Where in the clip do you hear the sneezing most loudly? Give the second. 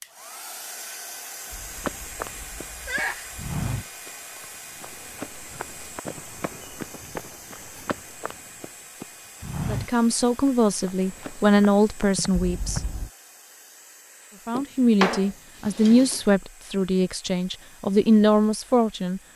3 s.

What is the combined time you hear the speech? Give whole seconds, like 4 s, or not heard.
8 s.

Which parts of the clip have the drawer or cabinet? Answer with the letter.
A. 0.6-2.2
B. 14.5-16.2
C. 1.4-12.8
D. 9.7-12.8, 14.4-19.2
B.